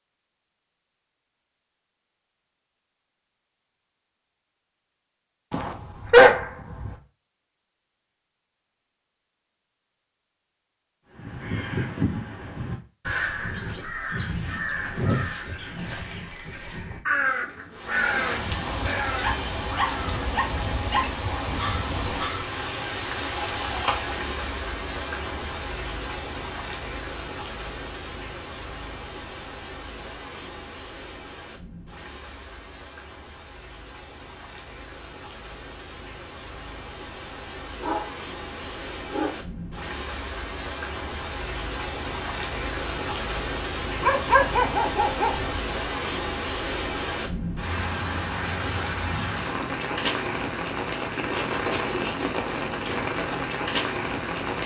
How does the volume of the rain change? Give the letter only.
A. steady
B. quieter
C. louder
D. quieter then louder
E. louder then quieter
D.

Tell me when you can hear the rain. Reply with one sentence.
You can hear the rain from 17.7 to 54.6 s.